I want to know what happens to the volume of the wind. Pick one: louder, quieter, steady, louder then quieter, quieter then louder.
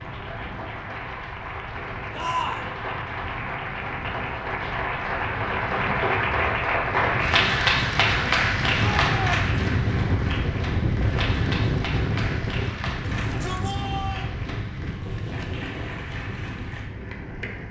louder then quieter.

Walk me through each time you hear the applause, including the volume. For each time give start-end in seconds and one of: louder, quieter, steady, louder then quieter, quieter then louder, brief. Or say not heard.
0.0-17.6 louder then quieter.